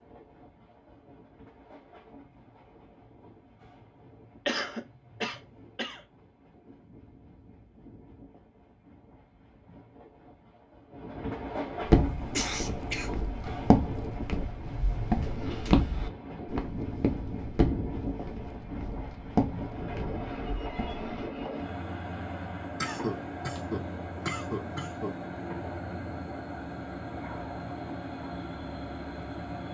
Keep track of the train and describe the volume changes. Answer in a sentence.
The volume of the train goes up.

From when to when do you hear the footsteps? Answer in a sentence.
The footsteps can be heard from 11.8 to 21.2 s.